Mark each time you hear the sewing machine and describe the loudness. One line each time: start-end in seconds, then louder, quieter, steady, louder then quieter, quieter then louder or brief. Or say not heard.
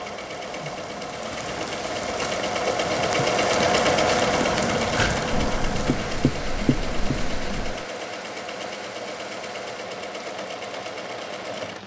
0.0-11.8 louder then quieter.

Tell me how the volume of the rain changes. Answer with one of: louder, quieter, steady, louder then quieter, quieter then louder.
louder then quieter.